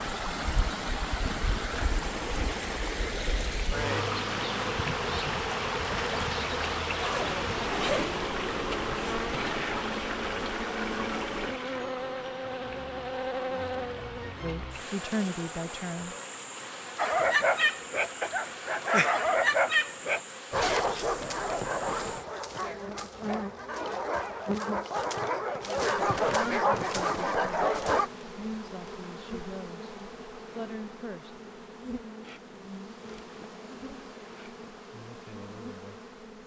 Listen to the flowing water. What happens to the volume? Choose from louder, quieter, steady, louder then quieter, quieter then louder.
quieter.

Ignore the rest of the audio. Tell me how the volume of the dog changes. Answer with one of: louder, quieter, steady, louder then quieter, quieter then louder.
quieter then louder.